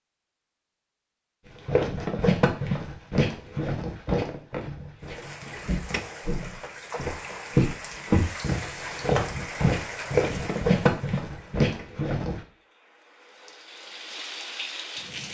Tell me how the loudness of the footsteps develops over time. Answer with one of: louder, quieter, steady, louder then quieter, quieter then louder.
quieter then louder.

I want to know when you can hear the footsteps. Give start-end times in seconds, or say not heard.
1.6-12.4.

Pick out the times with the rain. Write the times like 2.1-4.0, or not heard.
5.0-15.2.